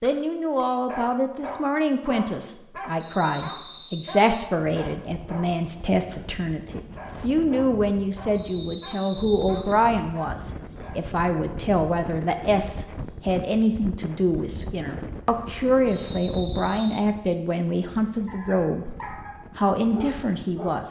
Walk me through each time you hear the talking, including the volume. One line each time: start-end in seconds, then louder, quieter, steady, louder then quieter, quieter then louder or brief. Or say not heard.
0.0-20.8 steady.